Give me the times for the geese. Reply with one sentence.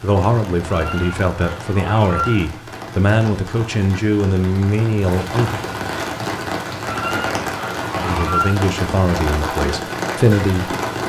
You can hear the geese from 0.7 to 2.5 s and from 6.8 to 8.6 s.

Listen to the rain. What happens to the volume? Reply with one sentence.
The volume of the rain goes up.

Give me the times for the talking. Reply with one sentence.
You can hear the talking from 0.0 to 5.6 s and from 8.0 to 10.8 s.